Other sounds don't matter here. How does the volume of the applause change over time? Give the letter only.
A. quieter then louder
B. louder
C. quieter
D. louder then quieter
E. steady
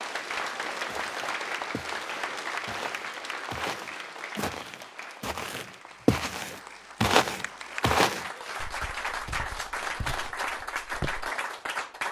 A.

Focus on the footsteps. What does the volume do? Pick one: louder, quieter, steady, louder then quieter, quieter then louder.
louder then quieter.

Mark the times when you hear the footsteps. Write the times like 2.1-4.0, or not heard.
0.8-11.3.